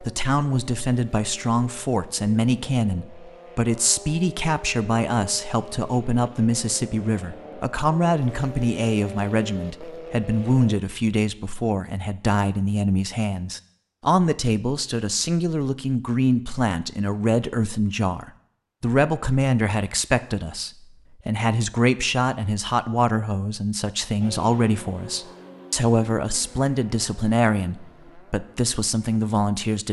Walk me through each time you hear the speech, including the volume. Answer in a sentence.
The speech can be heard from 0.0 to 29.8 s, at a steady volume.